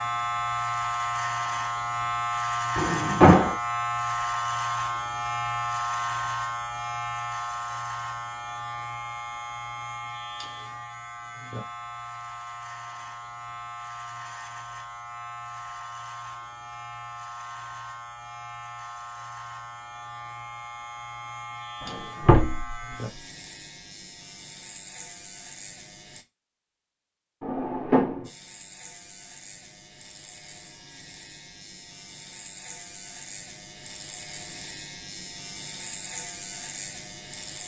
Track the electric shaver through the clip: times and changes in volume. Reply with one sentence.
The electric shaver can be heard from 0.0 to 26.2 s, getting quieter; and from 28.2 to 37.6 s, getting louder.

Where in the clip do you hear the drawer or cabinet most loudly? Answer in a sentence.
The volume of the drawer or cabinet peaks at 3 seconds.